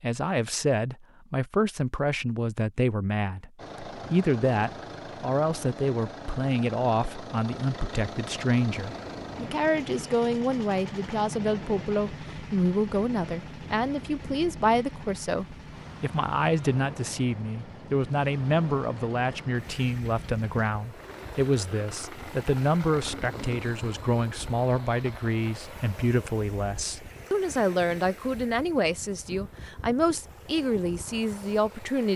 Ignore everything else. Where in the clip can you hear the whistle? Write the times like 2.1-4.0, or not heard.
not heard.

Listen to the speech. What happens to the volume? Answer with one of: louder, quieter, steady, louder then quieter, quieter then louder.
steady.